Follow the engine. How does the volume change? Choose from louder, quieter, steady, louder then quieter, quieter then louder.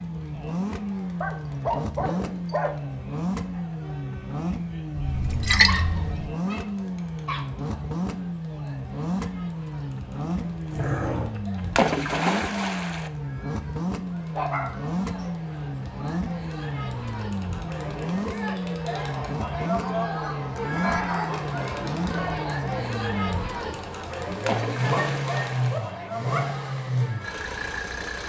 steady.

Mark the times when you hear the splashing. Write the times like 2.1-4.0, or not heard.
5.0-6.3, 11.8-13.1, 24.4-25.8.